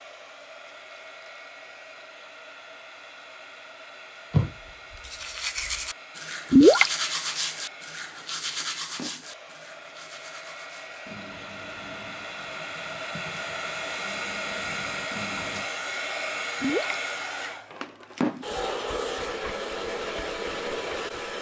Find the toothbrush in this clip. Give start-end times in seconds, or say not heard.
4.3-15.7.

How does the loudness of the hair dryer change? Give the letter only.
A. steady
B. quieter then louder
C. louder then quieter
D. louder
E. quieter
D.